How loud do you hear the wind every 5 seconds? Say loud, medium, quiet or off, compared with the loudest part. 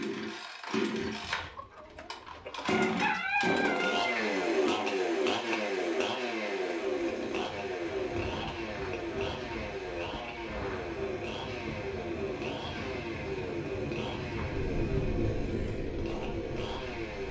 off, medium, loud, loud.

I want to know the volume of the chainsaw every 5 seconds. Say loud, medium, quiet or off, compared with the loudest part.
loud, loud, medium, medium.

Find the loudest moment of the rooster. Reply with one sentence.
The volume of the rooster peaks at 3 seconds.